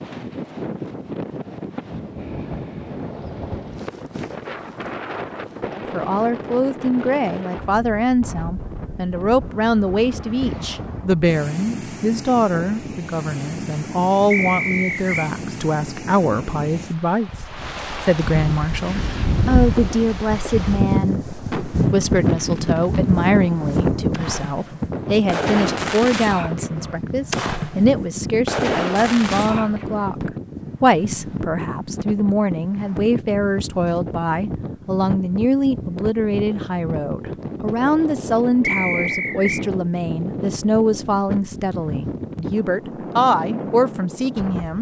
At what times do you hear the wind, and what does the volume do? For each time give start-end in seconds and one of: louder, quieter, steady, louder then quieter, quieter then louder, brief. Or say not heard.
0.0-44.7 louder then quieter.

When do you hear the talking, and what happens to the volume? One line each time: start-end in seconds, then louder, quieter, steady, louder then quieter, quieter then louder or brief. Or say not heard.
5.8-44.7 steady.